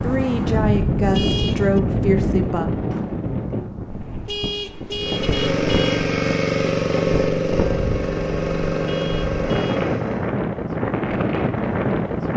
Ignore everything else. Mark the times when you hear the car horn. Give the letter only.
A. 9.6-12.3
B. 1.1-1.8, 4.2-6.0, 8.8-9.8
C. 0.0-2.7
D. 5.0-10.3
B.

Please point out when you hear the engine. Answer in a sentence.
The engine can be heard from 5.0 to 10.3 s.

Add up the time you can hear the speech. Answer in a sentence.
The speech can be heard for 3 seconds in total.